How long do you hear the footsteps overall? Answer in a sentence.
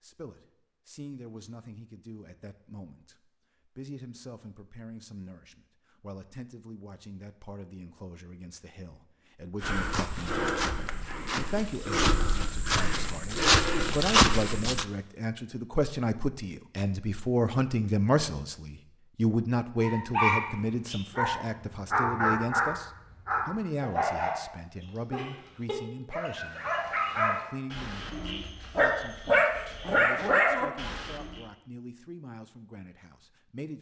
You can hear the footsteps for 5 seconds altogether.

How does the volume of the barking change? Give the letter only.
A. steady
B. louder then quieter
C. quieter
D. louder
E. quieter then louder
E.